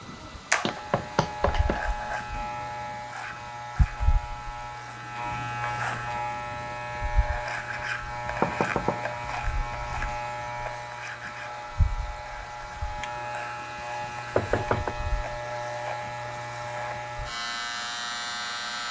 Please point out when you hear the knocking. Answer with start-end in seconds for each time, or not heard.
0.7-1.8, 8.2-10.1, 14.3-14.9.